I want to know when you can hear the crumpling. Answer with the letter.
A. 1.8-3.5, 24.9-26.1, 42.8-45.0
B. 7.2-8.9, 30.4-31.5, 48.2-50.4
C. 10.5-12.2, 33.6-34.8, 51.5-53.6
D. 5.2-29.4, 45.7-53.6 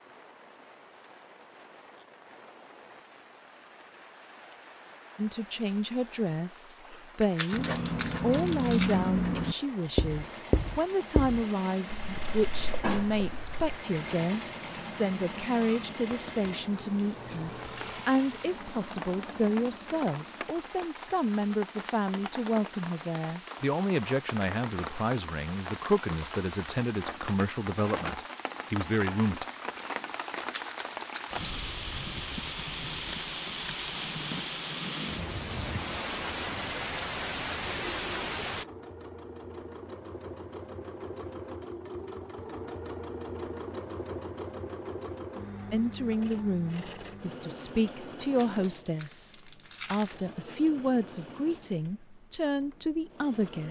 B.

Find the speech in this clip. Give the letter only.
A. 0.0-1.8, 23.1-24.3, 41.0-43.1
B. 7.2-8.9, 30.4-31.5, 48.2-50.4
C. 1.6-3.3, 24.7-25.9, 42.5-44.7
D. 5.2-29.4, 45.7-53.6
D.